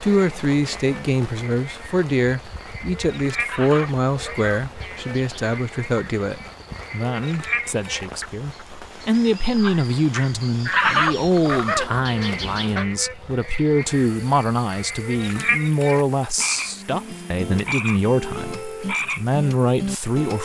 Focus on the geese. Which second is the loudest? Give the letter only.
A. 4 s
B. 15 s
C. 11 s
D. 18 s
C.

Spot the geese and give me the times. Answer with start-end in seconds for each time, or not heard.
3.5-5.7, 10.7-12.8.